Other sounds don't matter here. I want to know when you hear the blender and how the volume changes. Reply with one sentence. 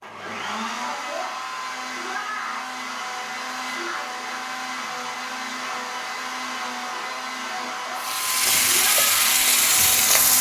You can hear the blender from 0.0 to 10.3 s, at a steady volume.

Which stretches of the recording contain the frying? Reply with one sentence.
You can hear the frying from 8.0 to 10.3 s.